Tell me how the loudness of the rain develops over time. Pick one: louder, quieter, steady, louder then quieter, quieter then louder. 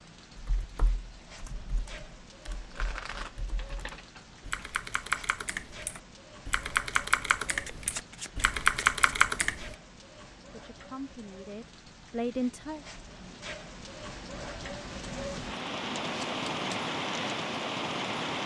louder.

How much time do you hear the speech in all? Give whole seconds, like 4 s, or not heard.
2 s.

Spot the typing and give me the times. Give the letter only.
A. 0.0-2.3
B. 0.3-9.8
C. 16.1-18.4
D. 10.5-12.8
B.